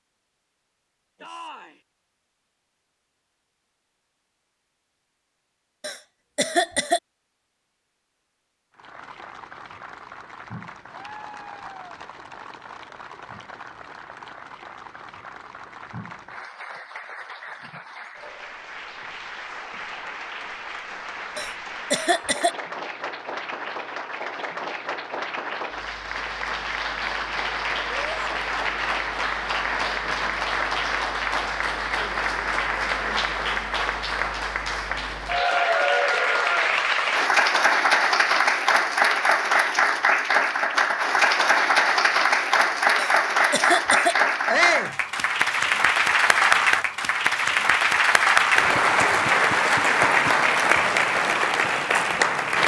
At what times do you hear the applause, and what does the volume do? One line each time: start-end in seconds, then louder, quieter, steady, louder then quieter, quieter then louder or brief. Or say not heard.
8.7-52.6 louder.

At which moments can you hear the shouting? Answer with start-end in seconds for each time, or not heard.
1.2-1.8, 27.9-28.3, 44.5-45.0.